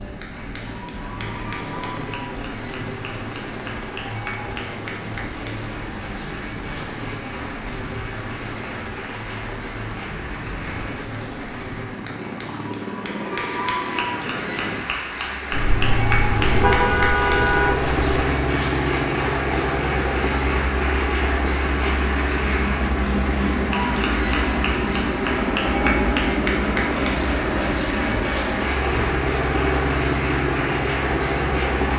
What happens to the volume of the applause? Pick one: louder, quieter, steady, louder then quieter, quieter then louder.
louder.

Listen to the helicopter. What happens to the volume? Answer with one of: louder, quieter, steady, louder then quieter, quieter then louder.
louder.